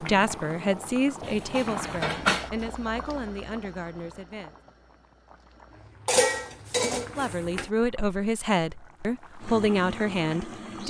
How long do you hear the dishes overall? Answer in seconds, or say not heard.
3 s.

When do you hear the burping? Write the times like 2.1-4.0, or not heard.
not heard.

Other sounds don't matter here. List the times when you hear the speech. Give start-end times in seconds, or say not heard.
0.0-4.5, 7.2-10.8.